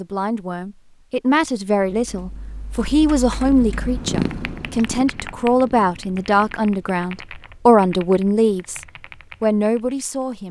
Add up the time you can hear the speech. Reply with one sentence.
The speech can be heard for 10 seconds in total.